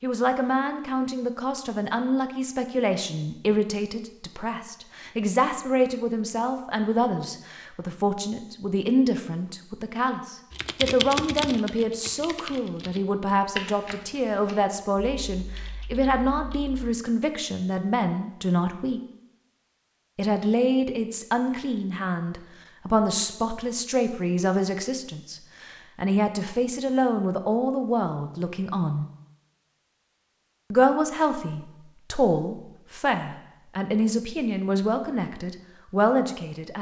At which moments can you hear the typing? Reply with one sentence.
You can hear the typing from 10.5 to 16.9 s.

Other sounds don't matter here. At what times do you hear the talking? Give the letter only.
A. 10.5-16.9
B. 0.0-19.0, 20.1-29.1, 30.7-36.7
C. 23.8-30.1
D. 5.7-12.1
B.